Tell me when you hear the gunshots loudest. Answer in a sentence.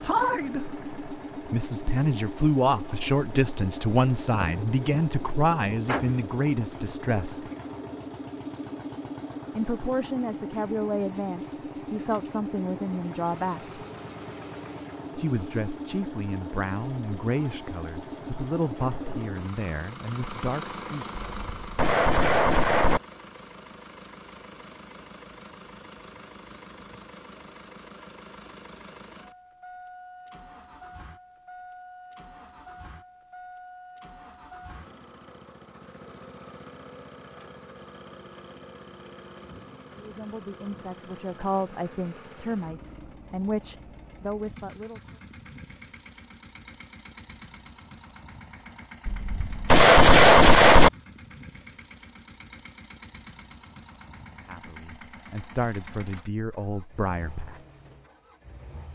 The loudest moment of the gunshots is at 50 seconds.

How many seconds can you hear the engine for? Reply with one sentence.
The engine can be heard for 59 seconds in total.